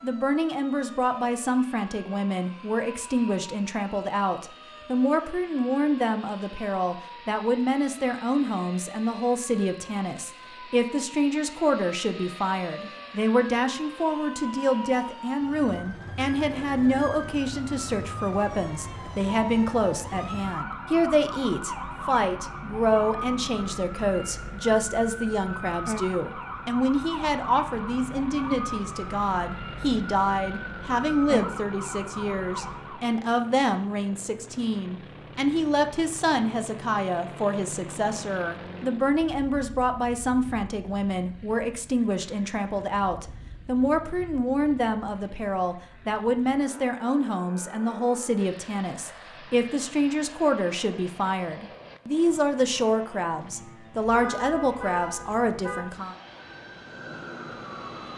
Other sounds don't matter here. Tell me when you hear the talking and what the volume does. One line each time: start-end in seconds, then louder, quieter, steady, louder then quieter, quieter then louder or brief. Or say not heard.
0.0-56.1 steady.